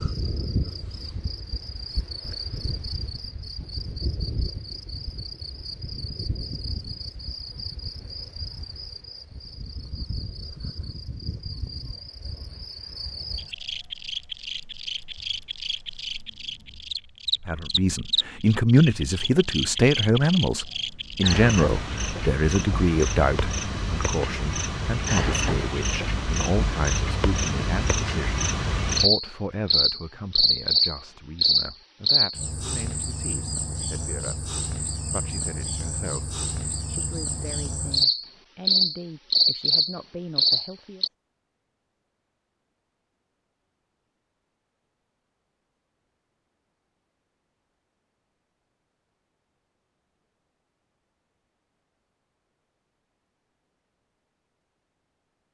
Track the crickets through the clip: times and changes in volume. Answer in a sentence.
The crickets can be heard from 0.0 to 41.1 s, getting louder.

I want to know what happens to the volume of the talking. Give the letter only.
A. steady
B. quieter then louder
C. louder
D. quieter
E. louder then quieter
D.